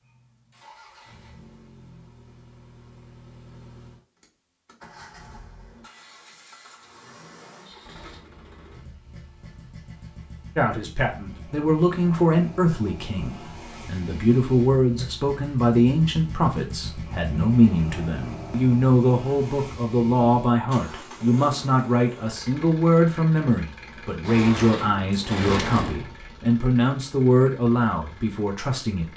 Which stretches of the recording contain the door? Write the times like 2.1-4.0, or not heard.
24.2-26.1.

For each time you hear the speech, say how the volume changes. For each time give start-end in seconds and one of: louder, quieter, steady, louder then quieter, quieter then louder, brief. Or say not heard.
10.6-29.1 steady.